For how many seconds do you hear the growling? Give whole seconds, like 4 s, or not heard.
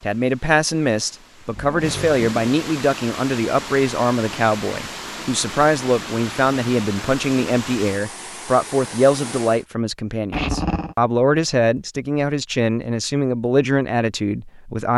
2 s.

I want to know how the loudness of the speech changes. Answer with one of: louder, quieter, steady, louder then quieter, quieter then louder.
steady.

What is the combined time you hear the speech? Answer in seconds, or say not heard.
15 s.